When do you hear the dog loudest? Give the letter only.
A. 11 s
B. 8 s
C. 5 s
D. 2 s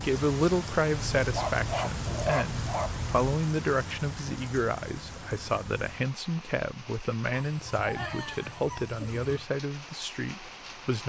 D.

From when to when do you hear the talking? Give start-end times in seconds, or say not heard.
0.0-11.0.